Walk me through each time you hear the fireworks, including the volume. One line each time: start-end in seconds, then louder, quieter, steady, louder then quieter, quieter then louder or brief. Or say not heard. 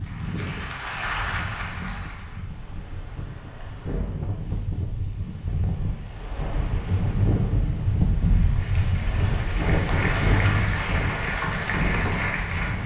not heard.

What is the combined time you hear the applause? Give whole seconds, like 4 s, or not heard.
7 s.